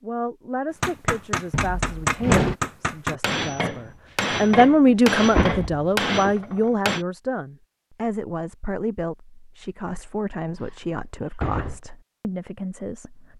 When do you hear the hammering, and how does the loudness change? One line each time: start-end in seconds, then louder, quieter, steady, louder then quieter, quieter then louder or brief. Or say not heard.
0.8-7.0 steady.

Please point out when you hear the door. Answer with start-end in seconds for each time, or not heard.
1.5-2.5, 4.8-6.3, 10.6-11.8.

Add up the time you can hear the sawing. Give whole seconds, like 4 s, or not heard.
not heard.